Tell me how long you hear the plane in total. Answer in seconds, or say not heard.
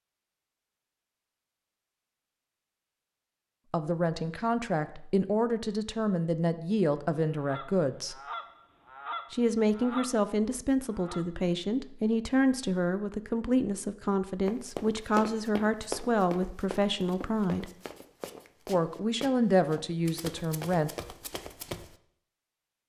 not heard.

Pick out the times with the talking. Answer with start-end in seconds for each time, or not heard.
3.7-8.2, 9.3-17.7, 18.6-20.9.